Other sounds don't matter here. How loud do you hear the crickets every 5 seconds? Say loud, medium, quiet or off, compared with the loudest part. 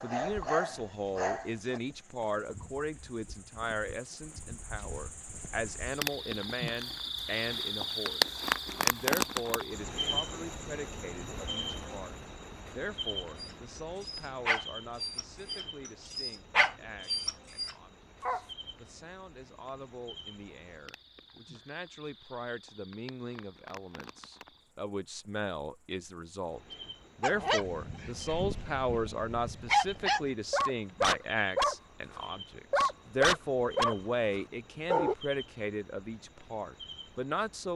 quiet, loud, medium, quiet, quiet, quiet, quiet, quiet.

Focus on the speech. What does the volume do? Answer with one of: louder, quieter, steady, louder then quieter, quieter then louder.
quieter then louder.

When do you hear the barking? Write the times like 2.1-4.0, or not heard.
0.0-1.8, 13.3-18.4, 27.2-35.1.